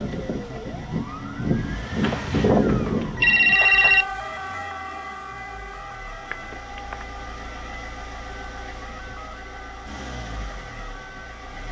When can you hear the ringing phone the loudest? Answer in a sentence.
The volume of the ringing phone peaks at 4 seconds.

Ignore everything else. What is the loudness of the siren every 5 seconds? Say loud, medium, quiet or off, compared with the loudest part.
loud, quiet, quiet.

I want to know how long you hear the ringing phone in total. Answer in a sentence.
You can hear the ringing phone for 3 seconds altogether.